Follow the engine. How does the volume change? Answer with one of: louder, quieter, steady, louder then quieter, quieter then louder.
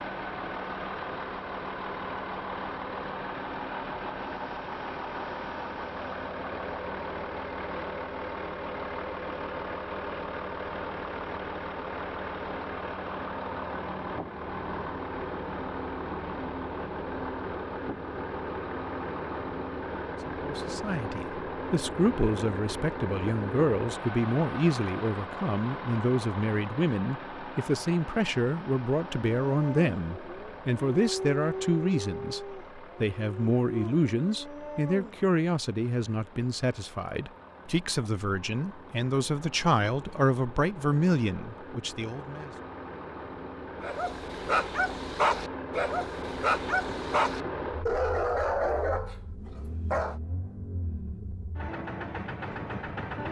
quieter then louder.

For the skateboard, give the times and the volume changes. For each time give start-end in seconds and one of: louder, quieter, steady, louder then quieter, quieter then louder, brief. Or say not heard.
not heard.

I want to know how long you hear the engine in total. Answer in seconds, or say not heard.
53 s.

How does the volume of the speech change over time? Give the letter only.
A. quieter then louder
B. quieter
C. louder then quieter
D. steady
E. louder
D.